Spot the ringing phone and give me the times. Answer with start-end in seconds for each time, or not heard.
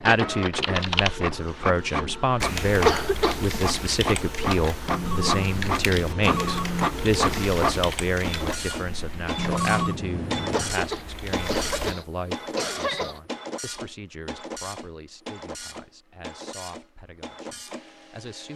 4.8-6.9, 9.3-10.8.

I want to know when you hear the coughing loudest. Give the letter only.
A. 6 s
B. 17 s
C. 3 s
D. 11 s
C.